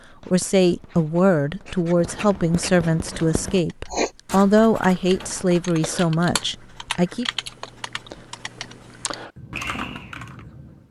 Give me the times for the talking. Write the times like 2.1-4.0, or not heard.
0.2-7.2.